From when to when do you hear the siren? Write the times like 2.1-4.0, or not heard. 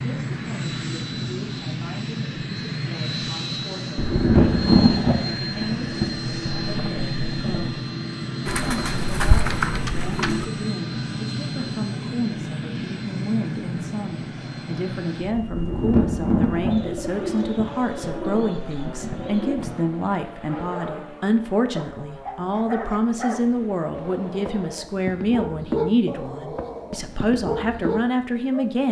not heard.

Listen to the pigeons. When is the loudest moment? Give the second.
9 s.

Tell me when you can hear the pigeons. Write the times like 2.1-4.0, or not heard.
8.4-10.4, 16.6-19.6.